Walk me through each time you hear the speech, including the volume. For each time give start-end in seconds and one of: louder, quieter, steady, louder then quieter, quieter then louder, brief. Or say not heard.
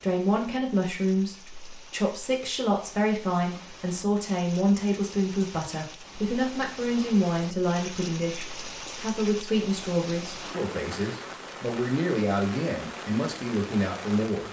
0.0-14.4 steady.